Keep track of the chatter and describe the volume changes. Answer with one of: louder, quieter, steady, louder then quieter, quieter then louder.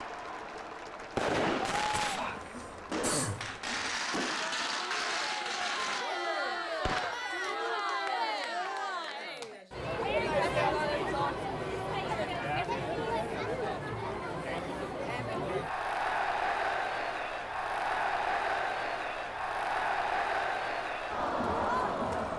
louder.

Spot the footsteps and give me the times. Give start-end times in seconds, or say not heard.
not heard.